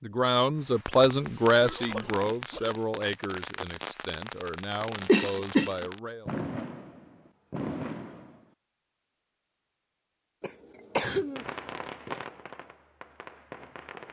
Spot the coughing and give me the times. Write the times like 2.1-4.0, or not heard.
1.2-2.8, 5.0-5.8, 10.4-11.4.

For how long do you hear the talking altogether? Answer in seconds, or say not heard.
6 s.